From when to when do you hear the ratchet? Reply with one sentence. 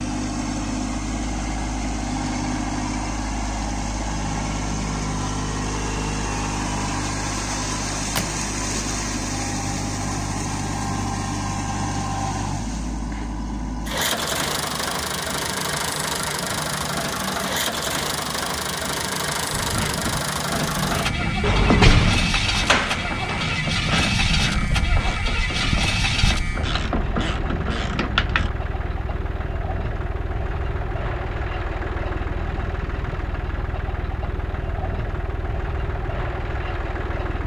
The ratchet can be heard from 19.5 to 28.5 s.